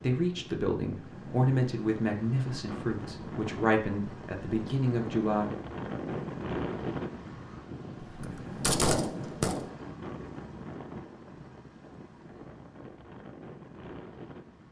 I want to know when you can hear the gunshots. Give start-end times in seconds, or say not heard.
8.0-9.7.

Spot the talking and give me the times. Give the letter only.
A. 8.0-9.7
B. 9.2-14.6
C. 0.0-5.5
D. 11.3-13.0
C.